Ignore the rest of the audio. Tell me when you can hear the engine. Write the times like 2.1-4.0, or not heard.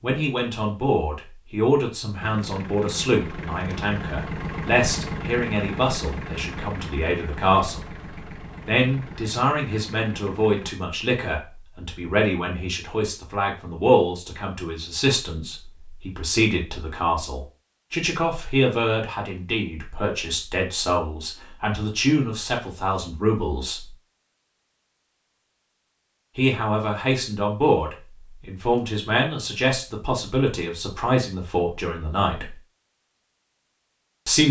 2.2-10.8.